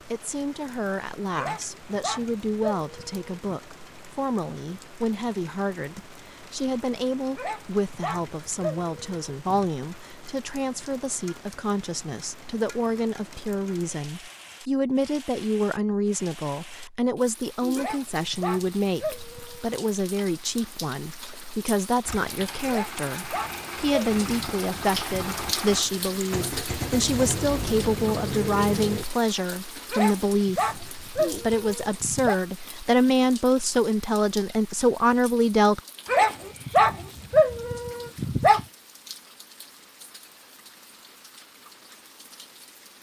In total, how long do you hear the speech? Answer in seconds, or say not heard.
36 s.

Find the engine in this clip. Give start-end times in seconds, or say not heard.
22.1-29.1.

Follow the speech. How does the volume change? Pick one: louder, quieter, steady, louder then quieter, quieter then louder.
louder.